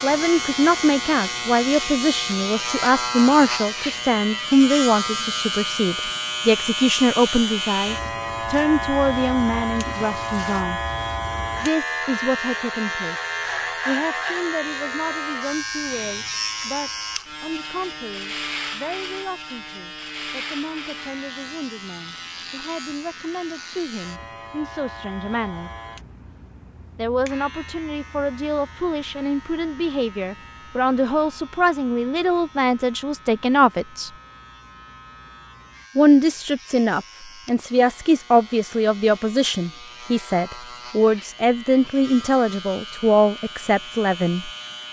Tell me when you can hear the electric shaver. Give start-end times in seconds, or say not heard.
0.0-44.8.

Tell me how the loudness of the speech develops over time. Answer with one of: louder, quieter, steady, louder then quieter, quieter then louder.
quieter then louder.